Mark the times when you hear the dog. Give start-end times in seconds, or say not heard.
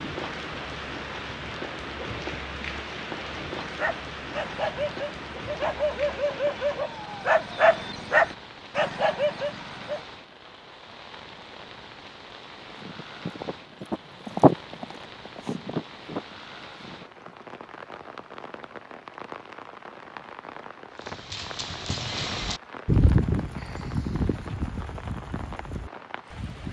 3.6-10.1.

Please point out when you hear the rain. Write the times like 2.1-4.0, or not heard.
0.0-26.6.